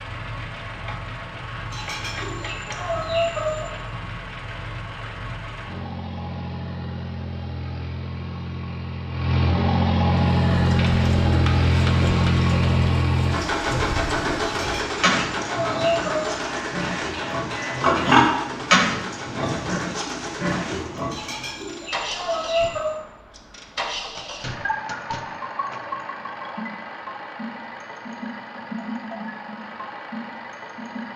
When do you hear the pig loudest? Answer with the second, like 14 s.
18 s.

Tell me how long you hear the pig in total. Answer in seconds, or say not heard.
11 s.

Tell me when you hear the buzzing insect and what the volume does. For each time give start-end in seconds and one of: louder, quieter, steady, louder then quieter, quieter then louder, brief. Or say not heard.
not heard.